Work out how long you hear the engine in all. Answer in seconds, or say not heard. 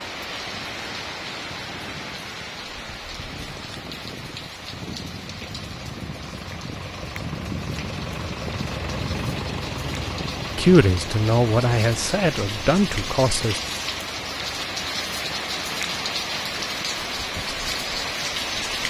19 s.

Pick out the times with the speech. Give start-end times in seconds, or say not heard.
10.6-13.6.